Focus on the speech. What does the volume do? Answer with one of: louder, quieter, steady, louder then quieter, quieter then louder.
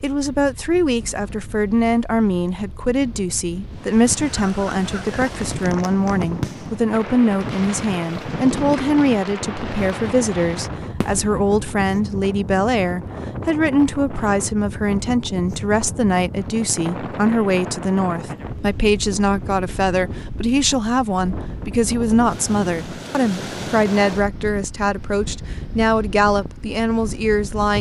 steady.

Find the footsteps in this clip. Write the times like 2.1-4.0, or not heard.
not heard.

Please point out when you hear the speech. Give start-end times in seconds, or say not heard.
0.0-27.7.